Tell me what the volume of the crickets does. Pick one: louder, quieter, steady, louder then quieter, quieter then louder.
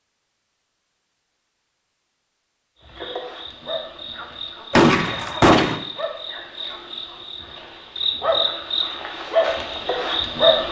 louder.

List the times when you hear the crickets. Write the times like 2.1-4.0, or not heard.
2.8-10.6.